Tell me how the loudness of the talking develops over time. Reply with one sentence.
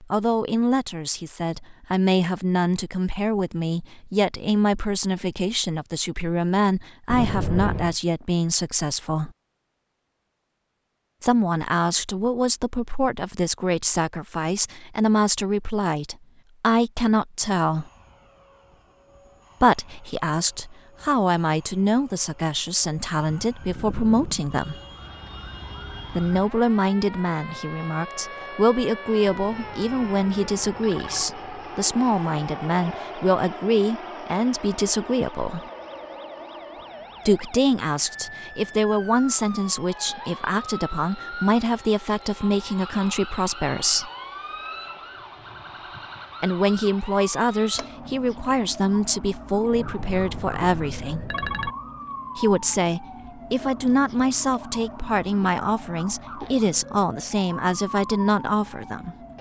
The volume of the talking stays about the same.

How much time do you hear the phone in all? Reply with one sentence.
You can hear the phone for 5 seconds altogether.